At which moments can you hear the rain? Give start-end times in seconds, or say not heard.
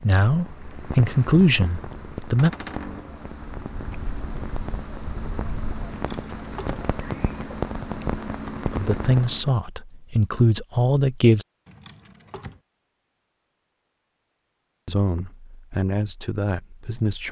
0.0-9.6.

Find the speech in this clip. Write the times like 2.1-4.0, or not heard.
0.0-2.5, 8.7-11.4, 14.8-17.2.